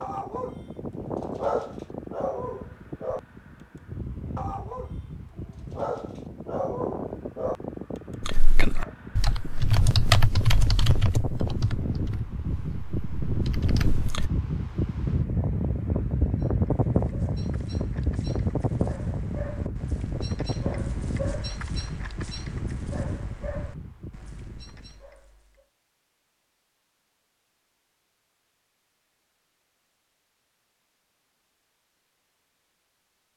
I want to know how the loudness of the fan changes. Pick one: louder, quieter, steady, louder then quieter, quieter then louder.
louder then quieter.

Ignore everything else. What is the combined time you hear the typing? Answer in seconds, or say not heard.
6 s.